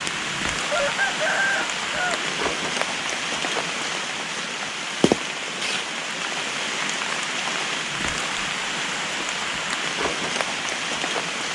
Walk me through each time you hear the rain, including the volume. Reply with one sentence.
The rain can be heard from 0.0 to 11.5 s, at a steady volume.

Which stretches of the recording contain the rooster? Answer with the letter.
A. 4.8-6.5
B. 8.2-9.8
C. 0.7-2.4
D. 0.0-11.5
C.